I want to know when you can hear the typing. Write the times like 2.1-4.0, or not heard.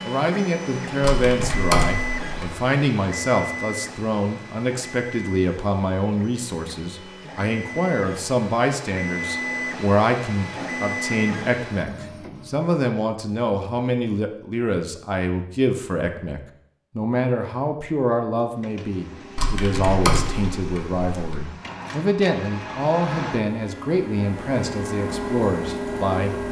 1.0-2.5, 19.4-21.4.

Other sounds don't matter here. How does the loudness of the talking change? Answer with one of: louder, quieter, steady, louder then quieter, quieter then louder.
steady.